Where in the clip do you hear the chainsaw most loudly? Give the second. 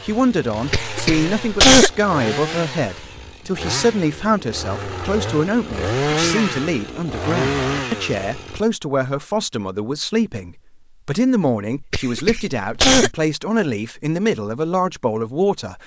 6 s.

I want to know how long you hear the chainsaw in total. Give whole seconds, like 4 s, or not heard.
9 s.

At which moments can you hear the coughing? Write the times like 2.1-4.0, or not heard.
0.7-1.9, 11.9-13.1.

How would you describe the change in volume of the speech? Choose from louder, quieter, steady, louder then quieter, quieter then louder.
steady.